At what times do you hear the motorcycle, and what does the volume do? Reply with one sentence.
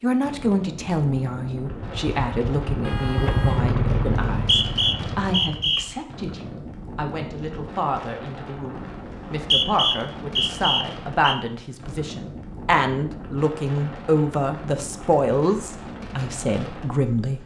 The motorcycle can be heard from 1.8 to 6.0 s, getting louder then quieter.